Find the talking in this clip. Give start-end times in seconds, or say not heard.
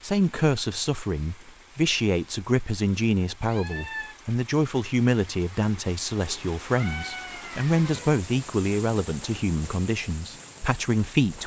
0.0-11.4.